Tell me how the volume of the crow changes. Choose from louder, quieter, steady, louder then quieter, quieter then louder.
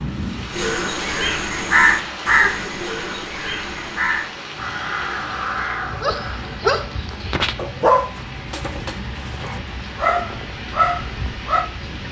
quieter.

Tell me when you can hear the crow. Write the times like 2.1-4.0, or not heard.
0.5-6.6.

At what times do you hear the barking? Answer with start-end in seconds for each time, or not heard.
6.0-11.7.